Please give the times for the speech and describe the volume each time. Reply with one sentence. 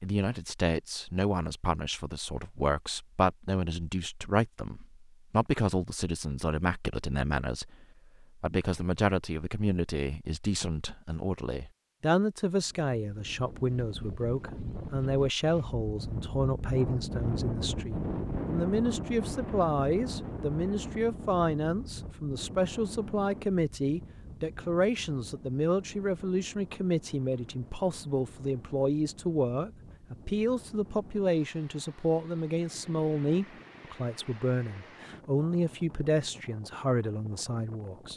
You can hear the speech from 0.0 to 38.1 s, at a steady volume.